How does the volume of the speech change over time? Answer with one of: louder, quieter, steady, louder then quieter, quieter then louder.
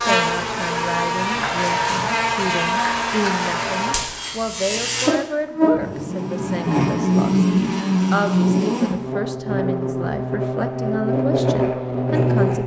steady.